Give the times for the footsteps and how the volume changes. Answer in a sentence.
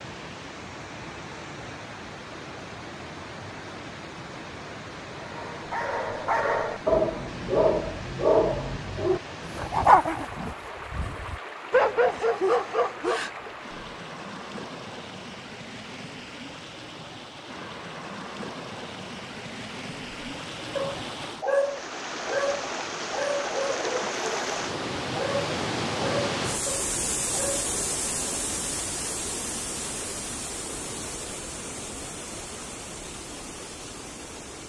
You can't hear the footsteps here.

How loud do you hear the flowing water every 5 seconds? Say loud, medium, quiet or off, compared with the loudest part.
medium, medium, medium, medium, loud, loud, medium.